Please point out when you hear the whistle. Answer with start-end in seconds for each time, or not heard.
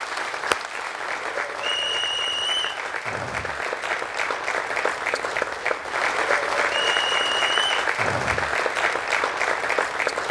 1.6-2.9, 6.7-7.8.